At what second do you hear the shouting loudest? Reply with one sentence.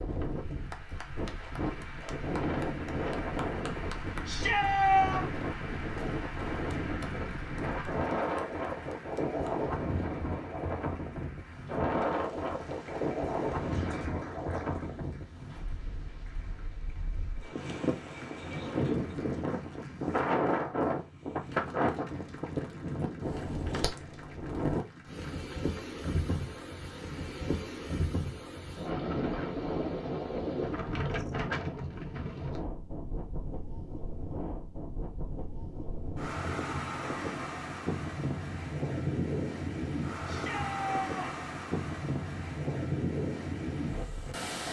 The volume of the shouting peaks at 5 seconds.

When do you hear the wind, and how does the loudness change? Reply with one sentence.
The wind can be heard from 0.0 to 44.6 s, at a steady volume.